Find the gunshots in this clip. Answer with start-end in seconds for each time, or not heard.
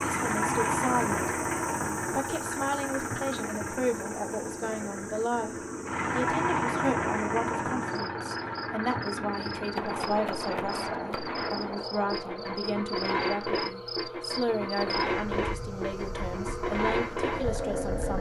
9.8-12.7.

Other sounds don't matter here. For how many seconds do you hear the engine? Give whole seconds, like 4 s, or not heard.
18 s.